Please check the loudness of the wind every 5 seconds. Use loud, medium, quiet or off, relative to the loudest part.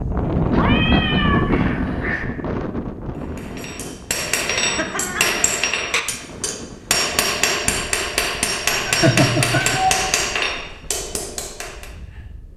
loud, quiet, quiet.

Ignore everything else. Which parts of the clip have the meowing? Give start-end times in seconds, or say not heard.
0.6-2.2, 4.5-5.4, 8.7-10.1.